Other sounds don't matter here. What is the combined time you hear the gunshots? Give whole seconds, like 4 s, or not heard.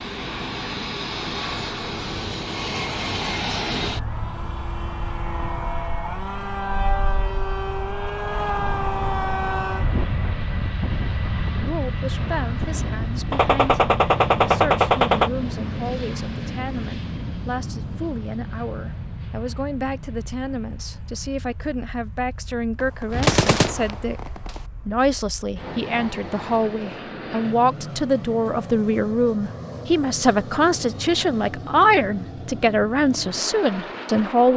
4 s.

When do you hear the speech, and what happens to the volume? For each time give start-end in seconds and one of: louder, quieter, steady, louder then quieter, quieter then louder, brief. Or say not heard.
11.6-34.5 louder.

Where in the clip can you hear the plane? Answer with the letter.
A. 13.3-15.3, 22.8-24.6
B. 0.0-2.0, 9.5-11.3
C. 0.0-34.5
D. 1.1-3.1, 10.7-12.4
C.